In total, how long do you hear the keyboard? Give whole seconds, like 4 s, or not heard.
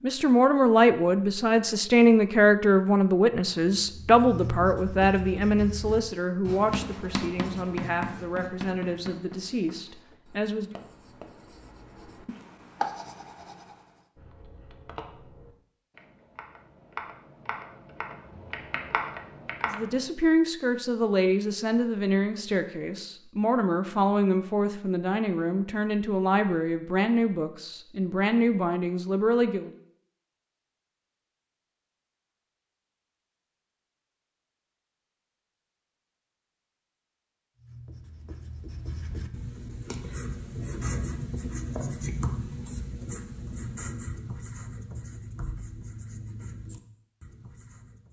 6 s.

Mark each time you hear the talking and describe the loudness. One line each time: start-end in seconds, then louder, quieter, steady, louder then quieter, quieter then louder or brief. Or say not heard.
0.0-10.8 quieter
19.6-29.7 steady.